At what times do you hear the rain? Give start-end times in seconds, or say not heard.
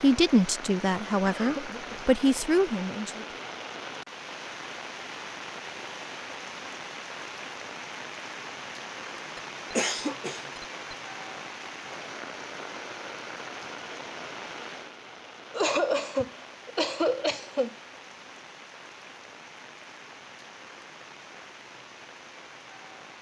0.0-23.1.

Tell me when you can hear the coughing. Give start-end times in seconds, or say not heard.
1.2-2.0, 9.3-10.9, 15.5-17.8.